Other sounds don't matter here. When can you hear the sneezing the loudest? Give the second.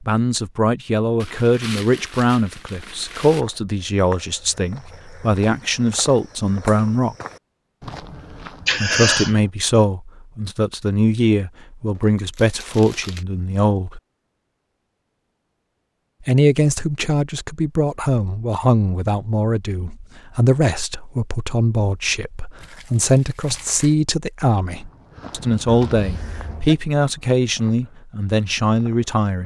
9 s.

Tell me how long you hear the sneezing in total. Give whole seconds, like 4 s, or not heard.
2 s.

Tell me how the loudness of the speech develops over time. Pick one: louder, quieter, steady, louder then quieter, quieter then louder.
steady.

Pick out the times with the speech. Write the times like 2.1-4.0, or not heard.
0.0-7.2, 8.8-14.0, 16.2-29.4.